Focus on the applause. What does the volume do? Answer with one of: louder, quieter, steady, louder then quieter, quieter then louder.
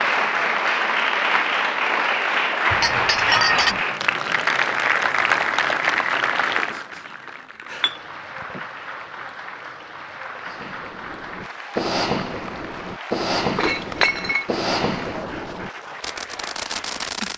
quieter.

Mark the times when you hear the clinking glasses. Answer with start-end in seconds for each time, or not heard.
2.7-3.8, 7.8-8.6, 13.6-14.4.